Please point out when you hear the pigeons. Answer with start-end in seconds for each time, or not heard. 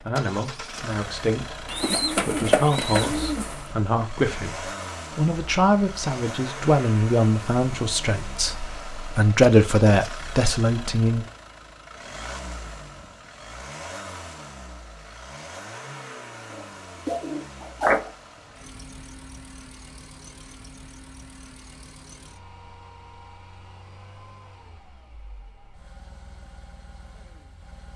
1.6-3.7, 16.5-18.1.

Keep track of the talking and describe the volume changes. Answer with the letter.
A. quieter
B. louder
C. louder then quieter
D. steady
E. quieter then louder
B.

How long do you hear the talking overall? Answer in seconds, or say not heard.
11 s.